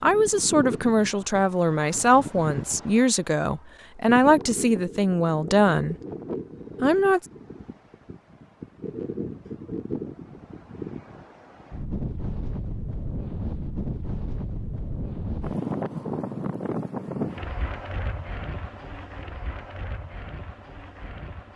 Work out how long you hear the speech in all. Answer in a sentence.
You can hear the speech for 6 seconds altogether.